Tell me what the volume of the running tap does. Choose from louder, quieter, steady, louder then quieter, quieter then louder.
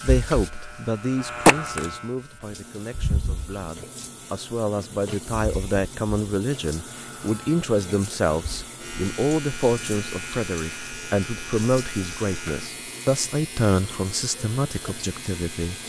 quieter.